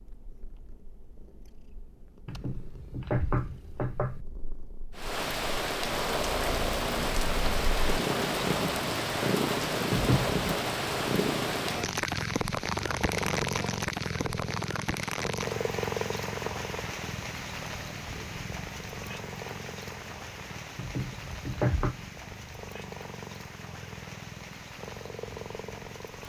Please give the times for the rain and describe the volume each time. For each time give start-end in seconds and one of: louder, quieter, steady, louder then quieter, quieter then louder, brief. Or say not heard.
5.0-26.2 quieter.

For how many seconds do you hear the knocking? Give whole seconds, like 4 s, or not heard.
4 s.